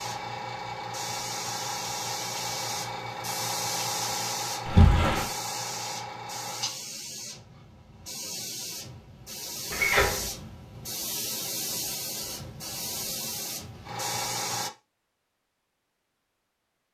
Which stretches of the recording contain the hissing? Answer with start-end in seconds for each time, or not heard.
0.0-14.7.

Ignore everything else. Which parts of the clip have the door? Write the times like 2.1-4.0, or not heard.
4.7-5.2, 9.7-10.3.